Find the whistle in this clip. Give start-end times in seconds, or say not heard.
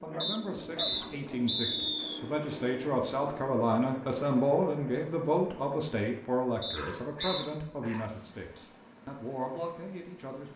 0.2-2.2, 6.6-7.5.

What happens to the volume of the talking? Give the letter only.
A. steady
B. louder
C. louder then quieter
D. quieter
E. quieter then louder
C.